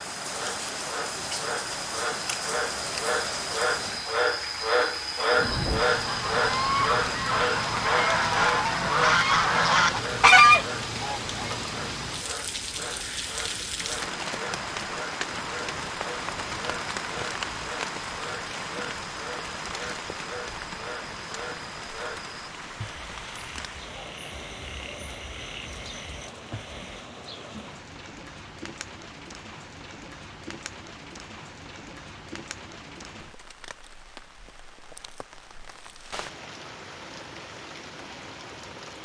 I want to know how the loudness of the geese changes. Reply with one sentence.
The loudness of the geese goes up.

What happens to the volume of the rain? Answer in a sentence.
The loudness of the rain goes down.